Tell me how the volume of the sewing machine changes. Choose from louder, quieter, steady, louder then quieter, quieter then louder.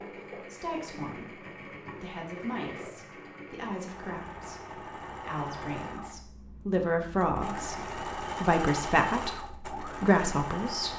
louder.